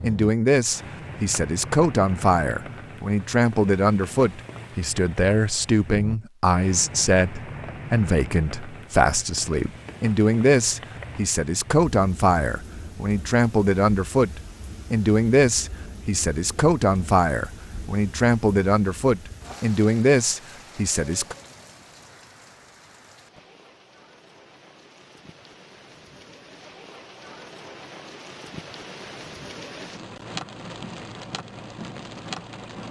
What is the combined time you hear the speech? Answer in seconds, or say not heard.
21 s.